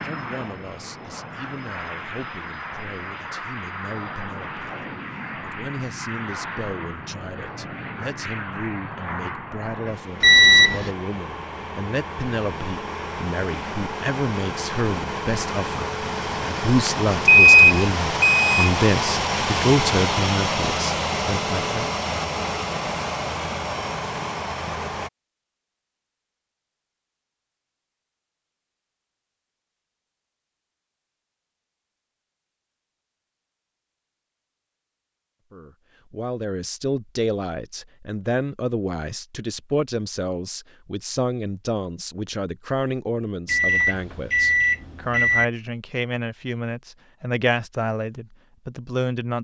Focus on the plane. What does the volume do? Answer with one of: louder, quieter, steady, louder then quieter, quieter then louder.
louder.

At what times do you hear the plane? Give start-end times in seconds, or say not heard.
0.0-25.1.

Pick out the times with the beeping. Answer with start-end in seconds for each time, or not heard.
10.2-10.9, 16.9-18.7, 43.5-45.5.